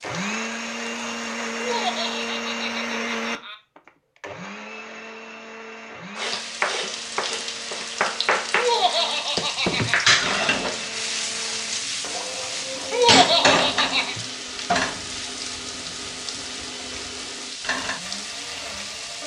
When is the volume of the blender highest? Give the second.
3 s.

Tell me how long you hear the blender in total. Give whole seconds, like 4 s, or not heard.
19 s.